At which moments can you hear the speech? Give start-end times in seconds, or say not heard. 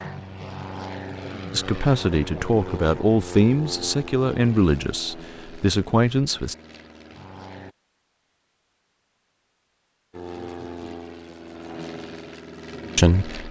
1.5-6.5, 12.9-13.4.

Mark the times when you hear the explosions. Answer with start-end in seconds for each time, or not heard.
not heard.